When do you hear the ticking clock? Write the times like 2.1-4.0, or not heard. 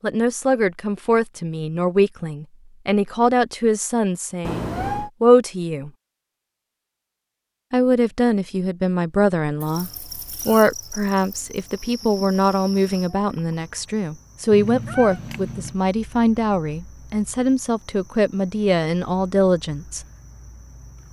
not heard.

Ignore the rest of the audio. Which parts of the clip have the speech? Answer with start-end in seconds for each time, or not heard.
0.0-5.9, 7.7-20.0.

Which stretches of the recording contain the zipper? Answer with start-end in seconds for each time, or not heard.
not heard.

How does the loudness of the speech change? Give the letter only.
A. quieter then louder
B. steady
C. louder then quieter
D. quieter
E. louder
B.